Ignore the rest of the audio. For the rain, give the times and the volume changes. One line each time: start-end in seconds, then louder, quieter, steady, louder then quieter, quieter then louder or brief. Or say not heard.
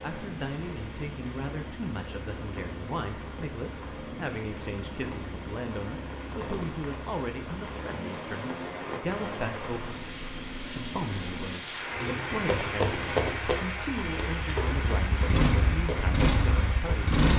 0.0-17.2 louder.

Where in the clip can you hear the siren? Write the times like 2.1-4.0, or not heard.
not heard.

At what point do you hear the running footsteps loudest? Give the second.
13 s.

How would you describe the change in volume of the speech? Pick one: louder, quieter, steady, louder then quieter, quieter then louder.
steady.